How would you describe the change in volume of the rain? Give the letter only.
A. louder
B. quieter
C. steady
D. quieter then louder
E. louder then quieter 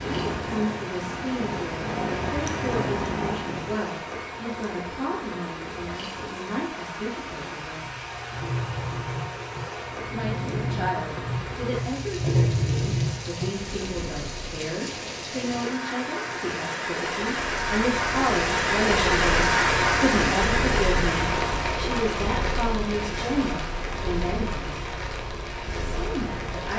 E.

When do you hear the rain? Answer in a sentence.
You can hear the rain from 0.0 to 26.7 s.